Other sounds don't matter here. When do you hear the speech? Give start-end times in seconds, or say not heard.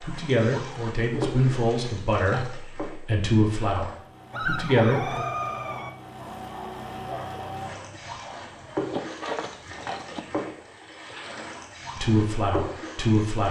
0.0-5.2, 11.9-13.4.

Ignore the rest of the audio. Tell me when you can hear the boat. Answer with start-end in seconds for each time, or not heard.
0.0-13.4.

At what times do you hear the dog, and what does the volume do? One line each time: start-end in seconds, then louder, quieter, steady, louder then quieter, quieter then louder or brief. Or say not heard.
4.3-10.2 quieter then louder.